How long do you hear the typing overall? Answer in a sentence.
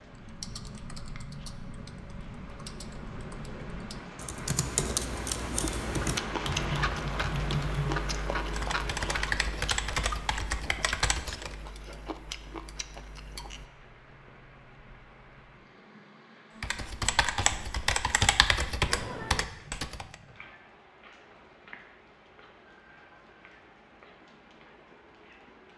You can hear the typing for 15 seconds altogether.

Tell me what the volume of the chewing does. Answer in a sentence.
The loudness of the chewing goes down.